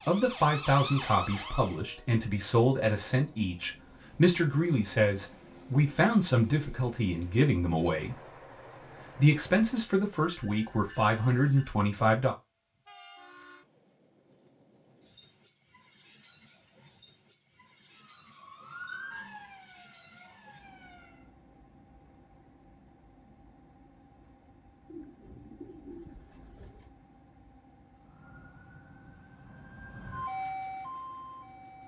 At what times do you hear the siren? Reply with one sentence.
The siren can be heard from 0.0 to 1.9 s, from 17.9 to 21.3 s and from 27.9 to 31.8 s.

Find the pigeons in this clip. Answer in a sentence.
You can hear the pigeons from 24.9 to 26.9 s.